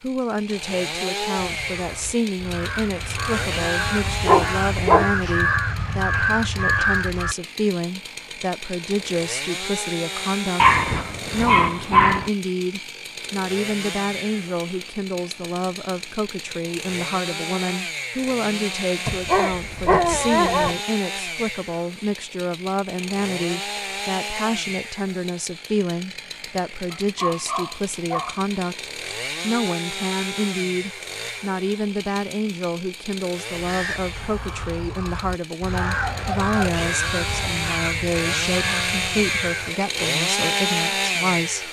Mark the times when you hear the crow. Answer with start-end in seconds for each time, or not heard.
1.4-7.3, 33.5-39.7.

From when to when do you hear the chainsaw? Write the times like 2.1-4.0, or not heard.
0.0-41.6.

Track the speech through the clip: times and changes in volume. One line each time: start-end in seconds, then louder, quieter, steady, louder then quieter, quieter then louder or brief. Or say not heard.
0.0-41.6 steady.